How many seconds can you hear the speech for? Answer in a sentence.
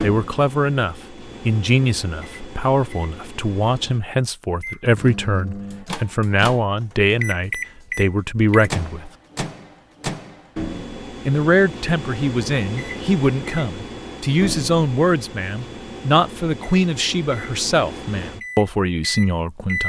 The speech can be heard for 18 seconds in total.